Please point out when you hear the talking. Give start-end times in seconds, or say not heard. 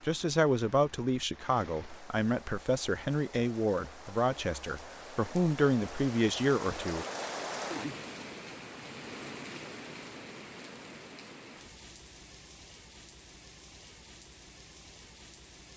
0.0-7.0.